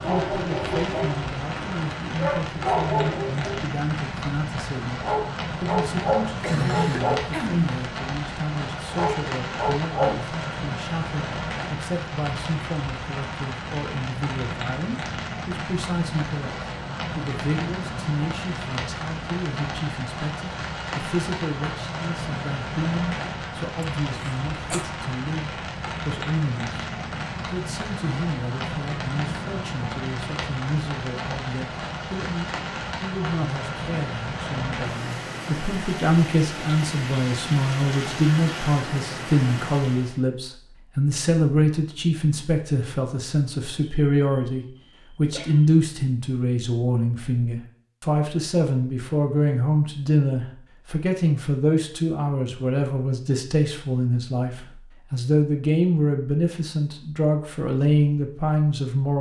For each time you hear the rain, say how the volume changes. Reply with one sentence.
The rain can be heard from 0.0 to 40.2 s, at a steady volume.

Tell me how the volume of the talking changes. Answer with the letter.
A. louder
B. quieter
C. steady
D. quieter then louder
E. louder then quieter
A.